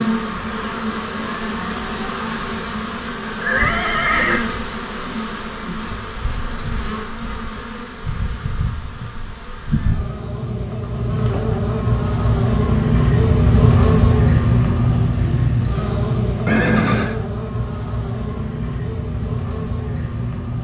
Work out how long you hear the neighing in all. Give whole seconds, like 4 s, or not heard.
2 s.